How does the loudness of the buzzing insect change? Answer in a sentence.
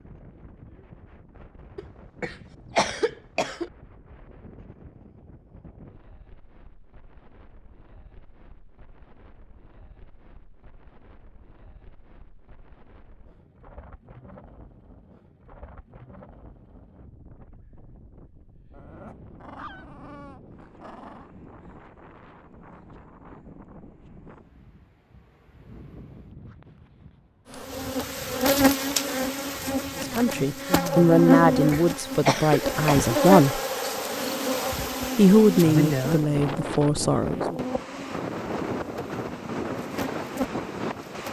The volume of the buzzing insect goes down.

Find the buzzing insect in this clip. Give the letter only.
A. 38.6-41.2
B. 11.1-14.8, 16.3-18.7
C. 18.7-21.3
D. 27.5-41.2
D.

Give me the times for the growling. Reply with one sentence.
The growling can be heard from 18.7 to 21.3 s.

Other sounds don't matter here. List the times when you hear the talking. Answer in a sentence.
The talking can be heard from 29.9 to 33.6 s and from 35.1 to 37.5 s.